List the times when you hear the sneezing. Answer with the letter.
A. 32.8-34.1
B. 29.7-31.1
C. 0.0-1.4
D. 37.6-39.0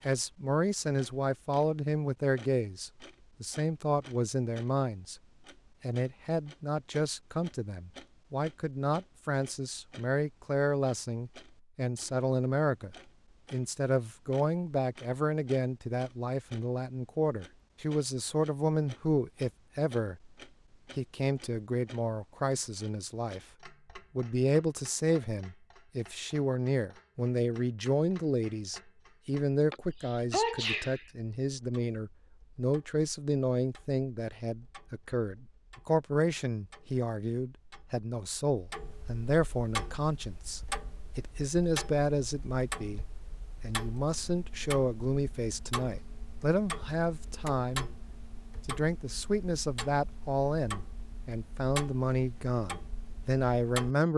B.